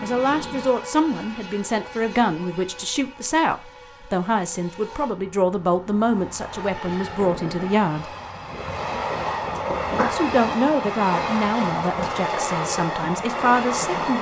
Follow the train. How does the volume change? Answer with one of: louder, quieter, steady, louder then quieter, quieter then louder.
quieter then louder.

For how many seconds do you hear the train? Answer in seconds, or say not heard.
14 s.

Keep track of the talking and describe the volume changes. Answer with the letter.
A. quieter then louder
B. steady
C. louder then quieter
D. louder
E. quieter
B.